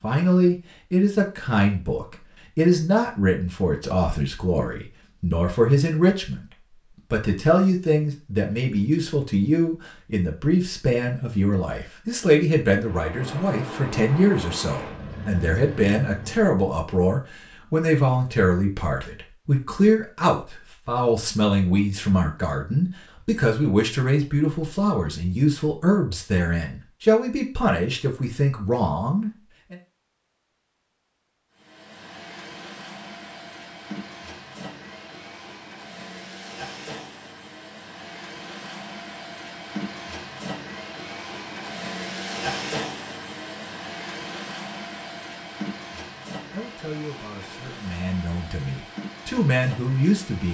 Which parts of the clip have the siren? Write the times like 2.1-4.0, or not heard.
not heard.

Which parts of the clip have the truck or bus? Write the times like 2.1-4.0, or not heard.
12.8-16.6, 31.6-50.4.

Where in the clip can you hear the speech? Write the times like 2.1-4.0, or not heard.
0.0-6.5, 7.1-29.8, 46.5-50.4.